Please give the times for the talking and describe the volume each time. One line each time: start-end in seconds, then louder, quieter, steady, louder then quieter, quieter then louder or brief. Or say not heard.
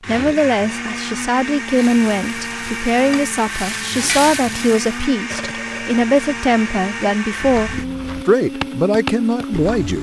0.1-9.9 steady.